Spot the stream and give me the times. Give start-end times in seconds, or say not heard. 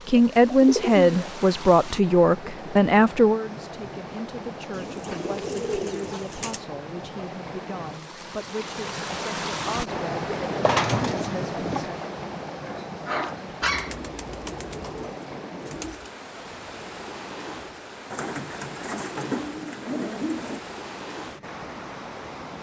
0.0-22.5.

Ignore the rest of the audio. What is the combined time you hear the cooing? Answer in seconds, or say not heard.
9 s.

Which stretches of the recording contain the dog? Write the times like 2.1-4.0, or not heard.
12.6-13.9.